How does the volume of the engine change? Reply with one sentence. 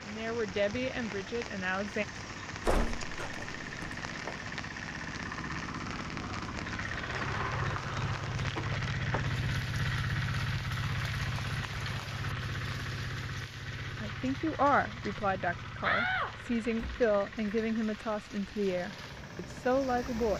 The loudness of the engine goes up, then down.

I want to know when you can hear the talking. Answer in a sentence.
You can hear the talking from 0.0 to 2.0 s and from 13.9 to 20.3 s.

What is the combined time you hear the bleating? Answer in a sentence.
The bleating can't be heard in this clip.